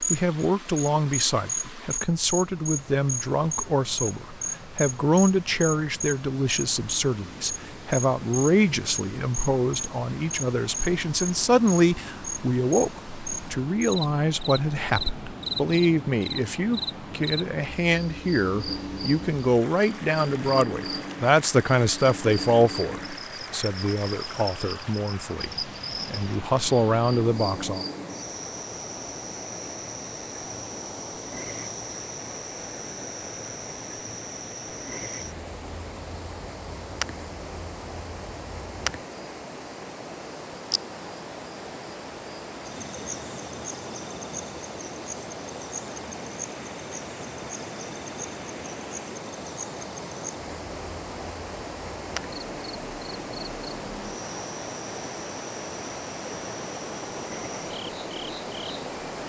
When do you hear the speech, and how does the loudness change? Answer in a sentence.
The speech can be heard from 0.0 to 27.9 s, at a steady volume.